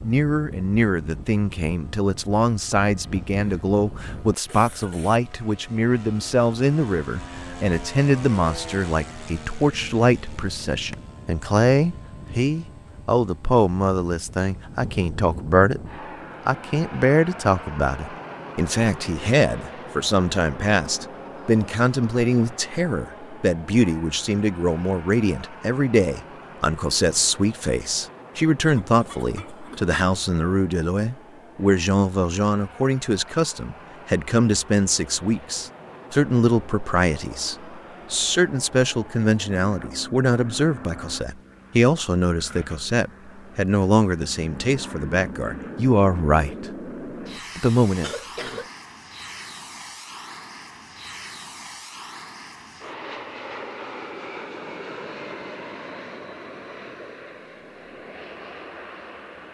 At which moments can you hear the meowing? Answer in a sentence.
The meowing can't be heard in this clip.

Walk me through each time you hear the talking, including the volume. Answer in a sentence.
You can hear the talking from 0.0 to 15.8 s, at a steady volume; from 16.4 to 46.6 s, at a steady volume; and briefly from 47.5 to 48.1 s.